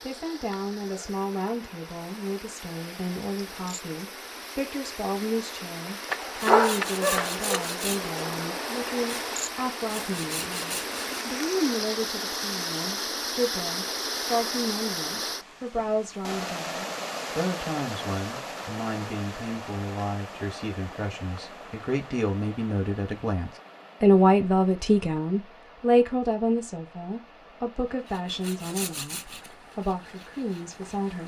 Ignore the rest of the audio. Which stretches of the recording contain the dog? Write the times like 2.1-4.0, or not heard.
6.1-7.7.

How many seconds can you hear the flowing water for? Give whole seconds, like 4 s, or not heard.
31 s.